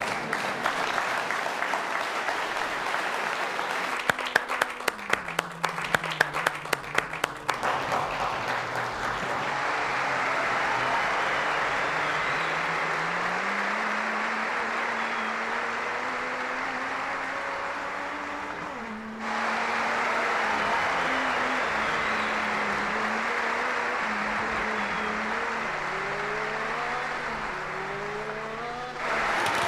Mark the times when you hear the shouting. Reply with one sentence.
You can't hear the shouting here.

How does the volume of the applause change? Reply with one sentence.
The loudness of the applause stays about the same.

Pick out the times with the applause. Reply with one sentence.
The applause can be heard from 0.0 to 29.6 s.